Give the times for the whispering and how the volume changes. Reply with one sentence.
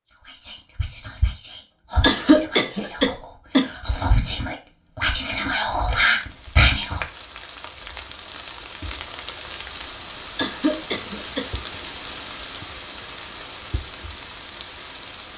The whispering can be heard from 0.2 to 7.0 s, getting louder.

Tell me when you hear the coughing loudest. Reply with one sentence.
The volume of the coughing peaks at 2 seconds.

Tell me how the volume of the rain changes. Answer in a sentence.
The loudness of the rain stays about the same.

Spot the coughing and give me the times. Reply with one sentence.
The coughing can be heard from 2.0 to 3.6 s and from 10.3 to 11.4 s.